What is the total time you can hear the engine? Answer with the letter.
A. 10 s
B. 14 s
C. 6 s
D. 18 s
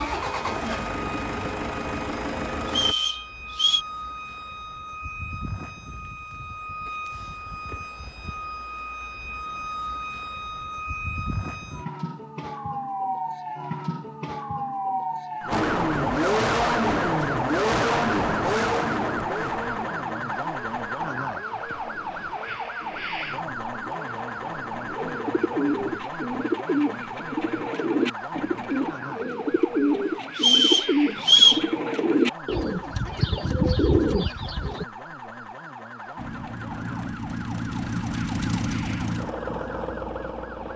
D.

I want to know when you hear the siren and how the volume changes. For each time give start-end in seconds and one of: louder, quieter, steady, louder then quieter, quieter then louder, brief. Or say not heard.
0.0-40.7 louder then quieter.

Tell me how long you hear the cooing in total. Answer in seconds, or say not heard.
10 s.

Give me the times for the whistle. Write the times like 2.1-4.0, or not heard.
2.6-3.9, 30.4-31.6.